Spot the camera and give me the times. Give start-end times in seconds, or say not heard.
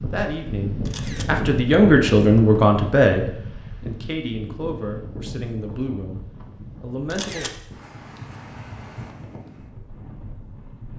0.8-1.4, 7.1-7.6.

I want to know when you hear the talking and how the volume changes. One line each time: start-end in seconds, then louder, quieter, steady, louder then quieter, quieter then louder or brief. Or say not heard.
0.0-7.5 louder then quieter.